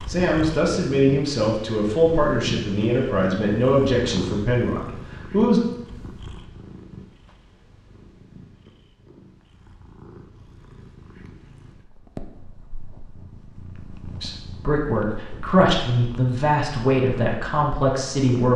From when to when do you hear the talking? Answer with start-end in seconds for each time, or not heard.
0.1-5.6, 14.2-18.5.